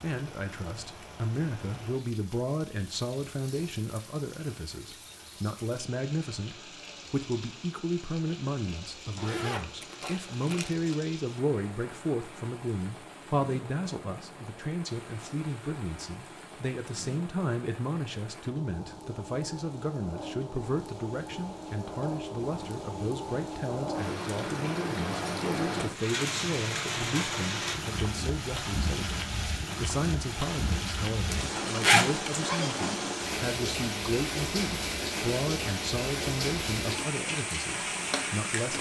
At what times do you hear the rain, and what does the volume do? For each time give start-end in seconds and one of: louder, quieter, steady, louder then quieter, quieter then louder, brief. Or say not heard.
0.0-38.7 louder.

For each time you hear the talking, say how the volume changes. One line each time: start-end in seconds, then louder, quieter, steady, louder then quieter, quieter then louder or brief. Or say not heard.
0.0-38.7 steady.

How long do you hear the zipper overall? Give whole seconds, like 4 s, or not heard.
3 s.